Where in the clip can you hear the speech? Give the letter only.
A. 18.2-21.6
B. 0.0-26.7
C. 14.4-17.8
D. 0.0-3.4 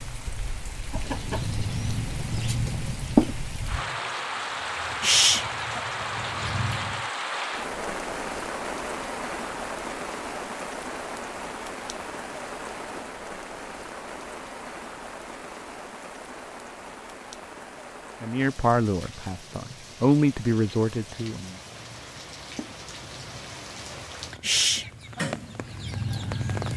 A.